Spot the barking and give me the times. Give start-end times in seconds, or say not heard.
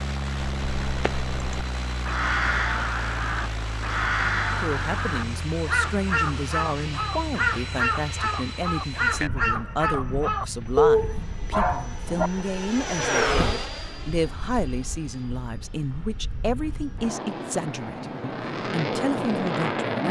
10.8-12.3.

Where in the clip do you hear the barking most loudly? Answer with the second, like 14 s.
11 s.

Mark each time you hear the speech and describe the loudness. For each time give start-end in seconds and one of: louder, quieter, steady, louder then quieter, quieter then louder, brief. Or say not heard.
4.6-20.0 steady.